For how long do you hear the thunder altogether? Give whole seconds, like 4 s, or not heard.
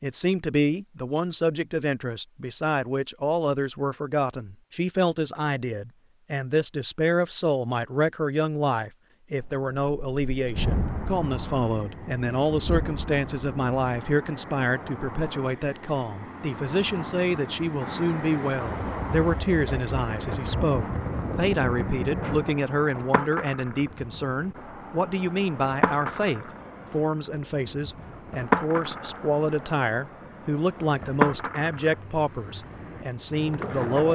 8 s.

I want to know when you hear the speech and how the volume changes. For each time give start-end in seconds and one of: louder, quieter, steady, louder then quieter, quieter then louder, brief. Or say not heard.
0.0-34.1 steady.